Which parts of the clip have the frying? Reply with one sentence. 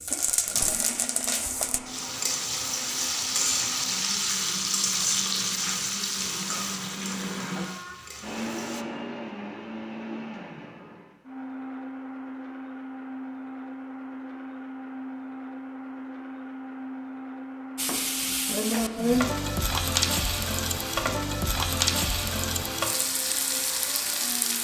You can hear the frying from 0.0 to 8.8 s and from 17.8 to 24.5 s.